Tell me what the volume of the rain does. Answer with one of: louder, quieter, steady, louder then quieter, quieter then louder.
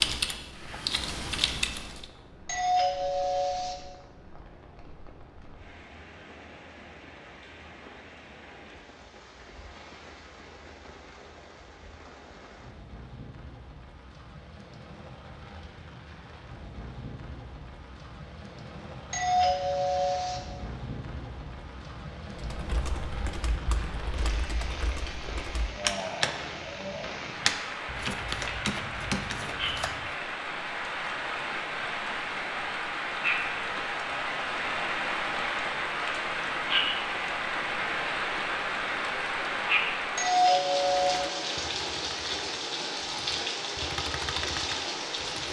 louder.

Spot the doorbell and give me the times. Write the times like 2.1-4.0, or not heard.
2.5-3.8, 19.1-20.4, 40.1-41.2.